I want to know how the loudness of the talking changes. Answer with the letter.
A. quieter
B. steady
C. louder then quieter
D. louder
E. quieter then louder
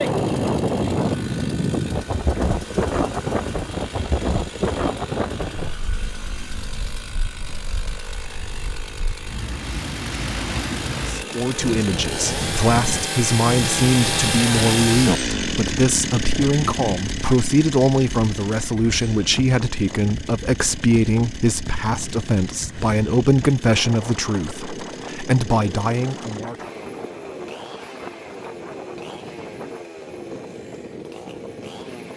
B.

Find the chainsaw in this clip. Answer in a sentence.
The chainsaw can be heard from 0.0 to 32.1 s.